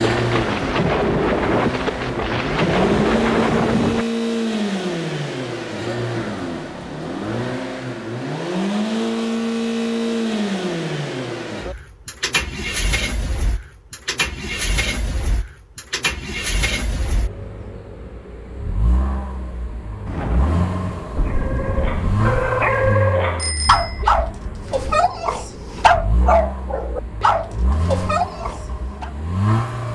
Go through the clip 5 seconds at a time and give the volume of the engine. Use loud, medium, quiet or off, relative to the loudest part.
loud, loud, loud, medium, medium, medium.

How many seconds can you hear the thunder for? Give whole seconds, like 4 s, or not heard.
7 s.